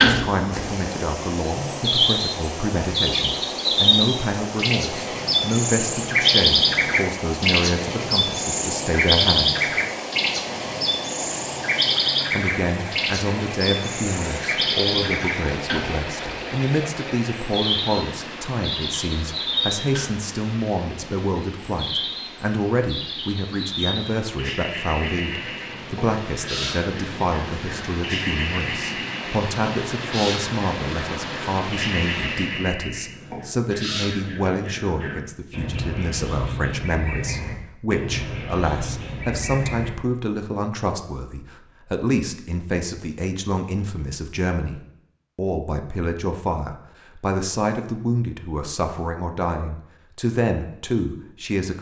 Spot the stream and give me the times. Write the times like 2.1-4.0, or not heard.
0.1-32.8.